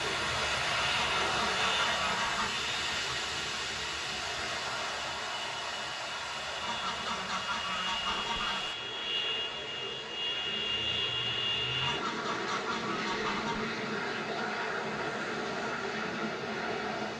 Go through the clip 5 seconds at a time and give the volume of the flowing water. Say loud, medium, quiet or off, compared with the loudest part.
loud, medium, medium, medium.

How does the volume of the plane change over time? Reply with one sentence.
The volume of the plane goes down, then up.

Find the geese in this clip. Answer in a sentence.
You can hear the geese from 0.9 to 2.5 s, from 6.6 to 8.7 s and from 11.8 to 13.7 s.